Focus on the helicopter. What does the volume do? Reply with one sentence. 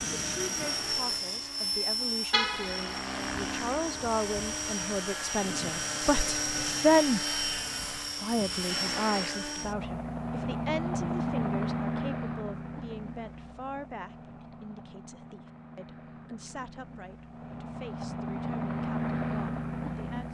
The volume of the helicopter goes down, then up.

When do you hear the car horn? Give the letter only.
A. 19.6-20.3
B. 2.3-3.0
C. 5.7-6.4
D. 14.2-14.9
B.